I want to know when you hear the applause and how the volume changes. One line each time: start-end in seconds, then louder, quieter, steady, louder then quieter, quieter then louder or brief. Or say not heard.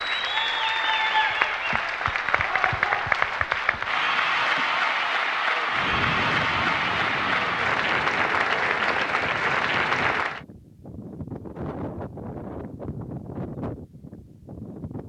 0.0-10.4 steady.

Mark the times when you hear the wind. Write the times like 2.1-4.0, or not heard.
5.7-15.0.